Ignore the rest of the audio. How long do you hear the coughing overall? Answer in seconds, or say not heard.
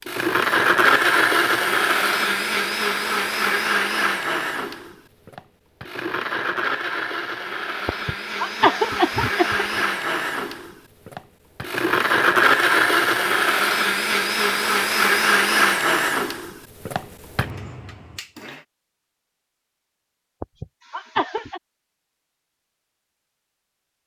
3 s.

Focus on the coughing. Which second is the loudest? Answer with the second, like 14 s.
9 s.